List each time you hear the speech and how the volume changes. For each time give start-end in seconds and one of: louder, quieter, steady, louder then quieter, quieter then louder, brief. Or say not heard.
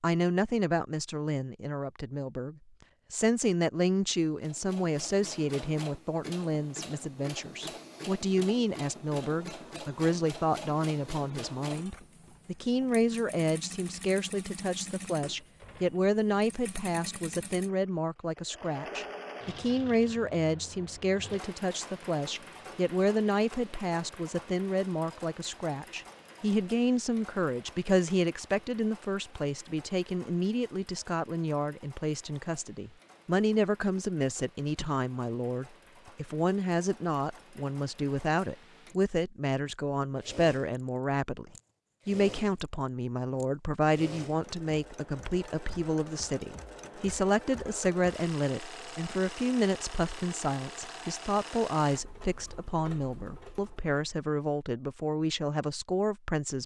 0.0-56.6 steady.